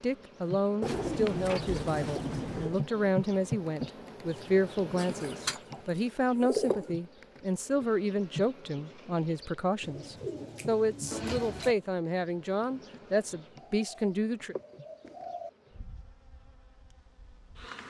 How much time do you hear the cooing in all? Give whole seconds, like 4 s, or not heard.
7 s.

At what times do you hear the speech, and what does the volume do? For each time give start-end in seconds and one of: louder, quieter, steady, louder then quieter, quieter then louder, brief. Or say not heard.
0.0-14.6 steady.